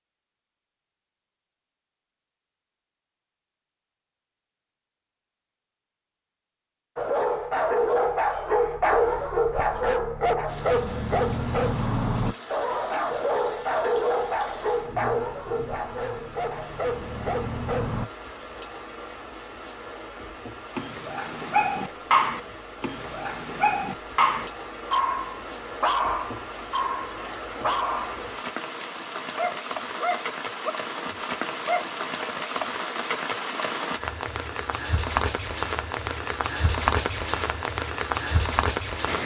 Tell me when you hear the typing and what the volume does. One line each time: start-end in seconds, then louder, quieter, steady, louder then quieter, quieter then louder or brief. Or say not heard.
not heard.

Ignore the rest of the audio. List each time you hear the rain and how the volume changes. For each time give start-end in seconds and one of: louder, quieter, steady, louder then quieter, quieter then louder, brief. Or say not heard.
10.4-39.2 louder.